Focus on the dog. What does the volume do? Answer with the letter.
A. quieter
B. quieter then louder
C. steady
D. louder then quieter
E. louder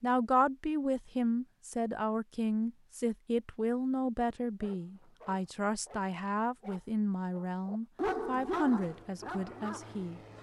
D.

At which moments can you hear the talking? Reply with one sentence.
You can hear the talking from 0.0 to 10.2 s.